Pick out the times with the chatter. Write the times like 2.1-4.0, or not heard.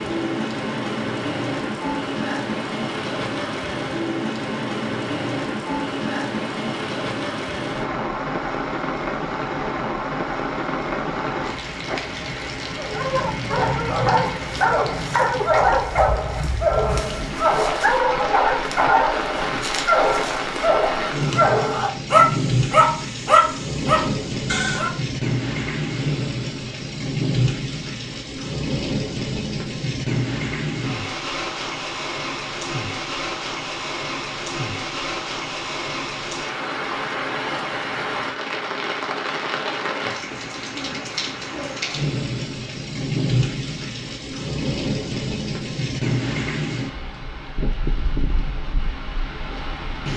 not heard.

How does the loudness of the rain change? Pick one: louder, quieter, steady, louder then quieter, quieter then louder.
steady.